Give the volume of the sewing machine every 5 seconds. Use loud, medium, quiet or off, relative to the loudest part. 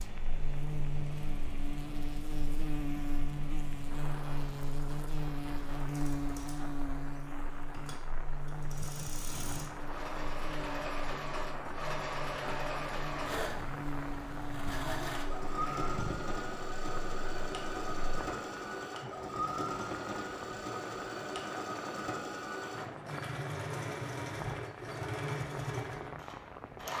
quiet, medium, loud, loud, loud, loud.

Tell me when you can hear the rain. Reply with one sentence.
The rain can be heard from 0.0 to 26.9 s.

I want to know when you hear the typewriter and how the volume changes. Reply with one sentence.
The typewriter can't be heard in this clip.